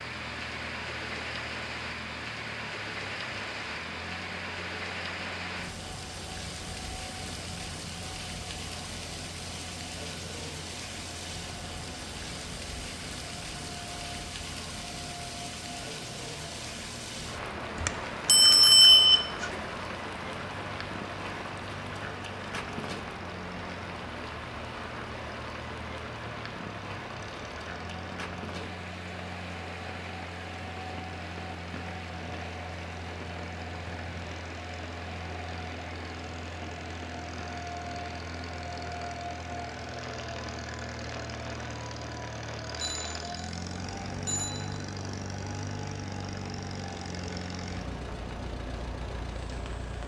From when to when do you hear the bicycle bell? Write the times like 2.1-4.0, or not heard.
17.8-19.6, 42.8-43.5, 44.2-44.8.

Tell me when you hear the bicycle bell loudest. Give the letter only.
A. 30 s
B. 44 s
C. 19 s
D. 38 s
C.